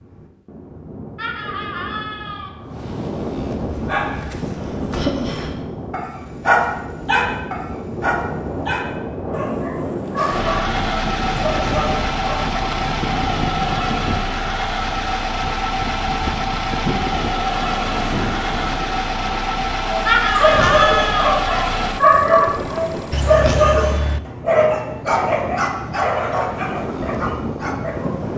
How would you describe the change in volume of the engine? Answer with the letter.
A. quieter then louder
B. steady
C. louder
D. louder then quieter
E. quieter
B.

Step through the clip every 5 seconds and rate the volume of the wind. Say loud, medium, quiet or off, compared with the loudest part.
loud, loud, loud, loud, medium, loud.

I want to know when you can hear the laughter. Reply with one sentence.
The laughter can be heard from 1.1 to 2.5 s and from 20.1 to 21.4 s.